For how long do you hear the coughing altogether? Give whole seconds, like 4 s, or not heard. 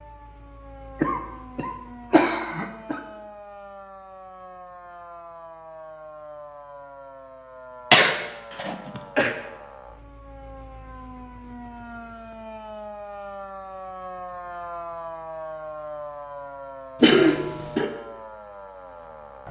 4 s.